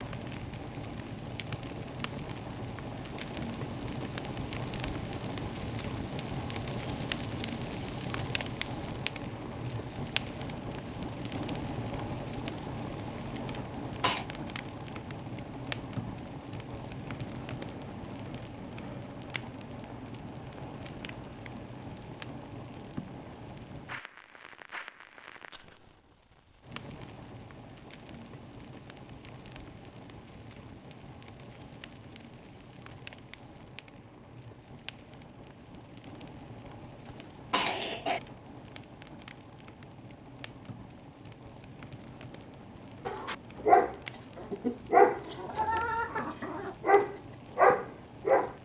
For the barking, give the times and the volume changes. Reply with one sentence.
The barking can be heard from 43.0 to 48.5 s, getting quieter then louder.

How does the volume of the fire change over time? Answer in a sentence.
The volume of the fire goes down.